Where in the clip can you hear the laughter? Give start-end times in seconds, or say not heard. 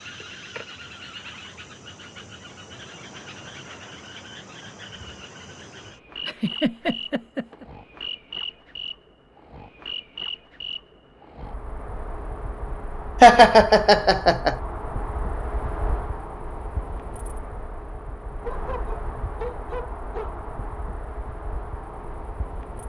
6.2-7.7, 13.2-14.6.